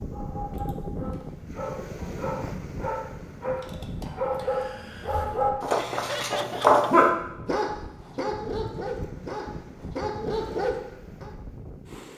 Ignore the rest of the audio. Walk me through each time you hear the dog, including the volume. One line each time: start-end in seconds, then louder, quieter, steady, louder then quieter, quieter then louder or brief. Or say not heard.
0.0-11.3 louder then quieter.